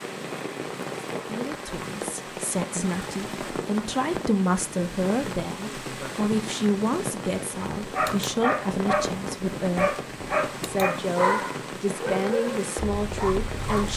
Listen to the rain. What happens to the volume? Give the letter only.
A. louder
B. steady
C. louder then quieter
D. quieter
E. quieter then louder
B.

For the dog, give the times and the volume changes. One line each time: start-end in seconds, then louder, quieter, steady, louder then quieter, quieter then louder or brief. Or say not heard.
7.5-13.9 quieter.